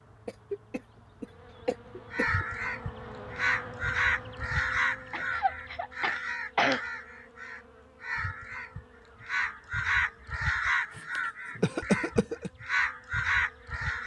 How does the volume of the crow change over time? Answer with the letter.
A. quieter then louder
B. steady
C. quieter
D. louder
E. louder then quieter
A.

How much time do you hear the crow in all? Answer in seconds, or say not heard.
12 s.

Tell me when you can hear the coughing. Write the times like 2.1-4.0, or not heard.
0.2-2.5, 5.1-6.8, 10.9-12.5.